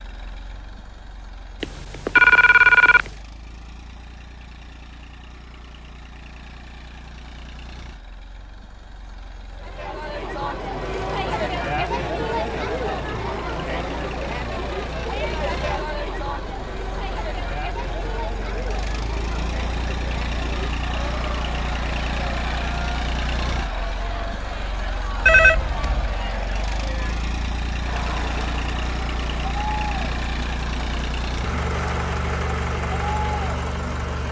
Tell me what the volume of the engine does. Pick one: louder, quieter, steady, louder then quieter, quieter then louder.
louder.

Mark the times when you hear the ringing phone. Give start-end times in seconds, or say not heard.
1.6-3.1, 25.2-26.1.